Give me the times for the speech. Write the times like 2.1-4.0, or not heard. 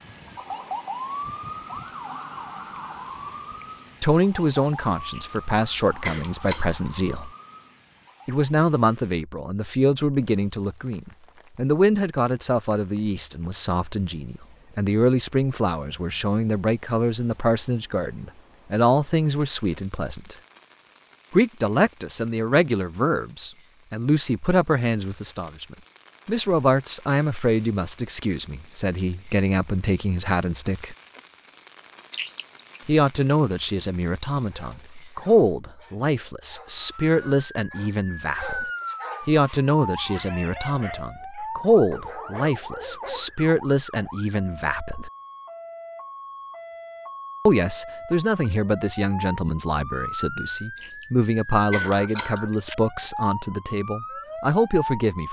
4.0-7.3, 8.2-20.4, 21.3-30.9, 32.9-38.6, 39.2-45.1, 47.5-55.2.